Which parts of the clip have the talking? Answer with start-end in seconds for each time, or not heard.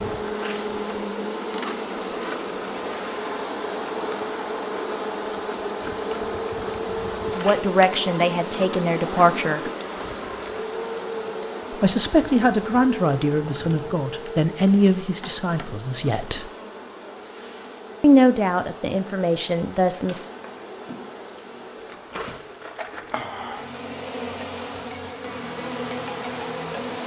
7.3-9.6, 11.7-16.4, 18.0-20.2.